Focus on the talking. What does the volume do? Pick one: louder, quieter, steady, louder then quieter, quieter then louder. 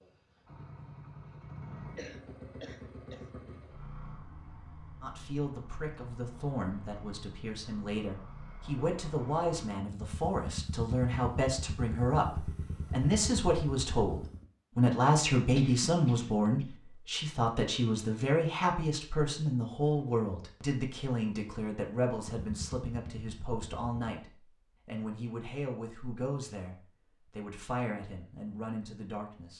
louder then quieter.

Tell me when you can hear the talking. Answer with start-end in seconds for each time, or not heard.
5.0-29.5.